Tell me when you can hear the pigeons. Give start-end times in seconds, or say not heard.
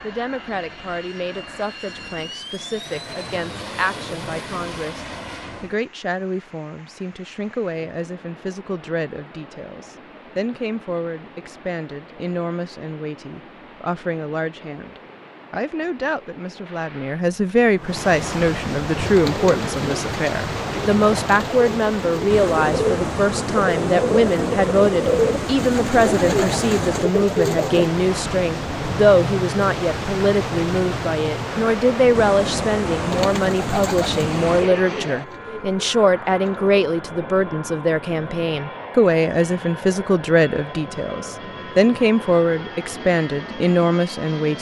18.9-27.9, 33.0-36.7.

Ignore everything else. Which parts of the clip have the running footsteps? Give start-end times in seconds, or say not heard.
not heard.